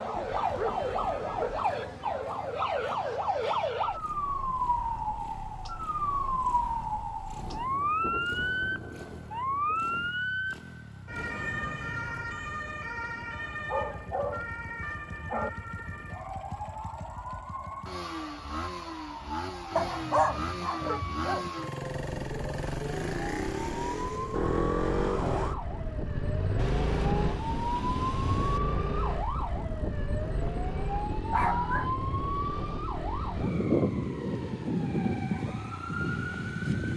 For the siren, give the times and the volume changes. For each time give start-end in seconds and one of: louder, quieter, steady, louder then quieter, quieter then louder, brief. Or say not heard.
0.0-36.9 quieter then louder.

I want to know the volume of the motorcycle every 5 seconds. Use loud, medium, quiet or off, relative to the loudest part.
quiet, quiet, quiet, medium, loud, loud, medium, medium.